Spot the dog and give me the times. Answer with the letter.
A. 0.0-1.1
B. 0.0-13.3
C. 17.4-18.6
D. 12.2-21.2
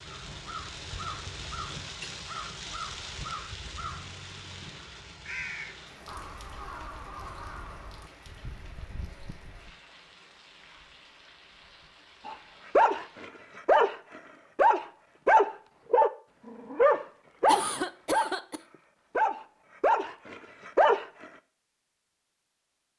D.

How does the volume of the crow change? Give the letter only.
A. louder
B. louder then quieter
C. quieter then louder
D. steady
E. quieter
E.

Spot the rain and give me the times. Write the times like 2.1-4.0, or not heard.
0.0-13.3.